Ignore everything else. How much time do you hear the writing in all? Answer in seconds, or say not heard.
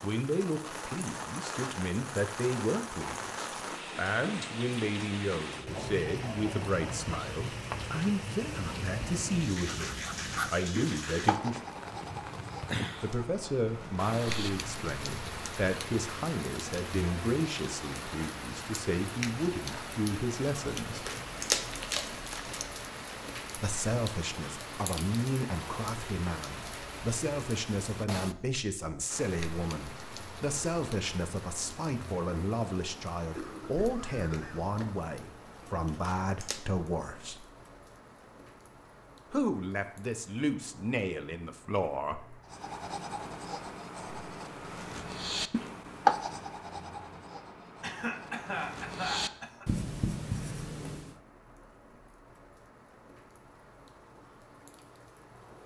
17 s.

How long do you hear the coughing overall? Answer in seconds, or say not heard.
5 s.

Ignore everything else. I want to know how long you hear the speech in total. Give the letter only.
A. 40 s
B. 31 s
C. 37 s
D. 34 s
C.